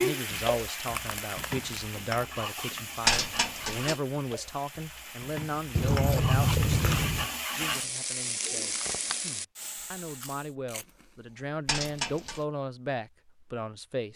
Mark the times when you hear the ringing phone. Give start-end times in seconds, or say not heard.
3.0-4.0, 11.7-12.4.